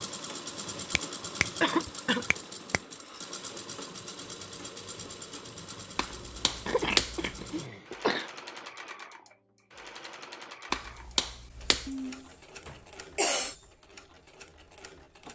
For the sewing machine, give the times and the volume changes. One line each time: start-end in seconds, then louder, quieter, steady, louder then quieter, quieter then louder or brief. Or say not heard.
0.0-15.3 quieter.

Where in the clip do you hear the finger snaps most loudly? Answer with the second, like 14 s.
7 s.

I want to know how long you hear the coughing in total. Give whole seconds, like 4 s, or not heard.
4 s.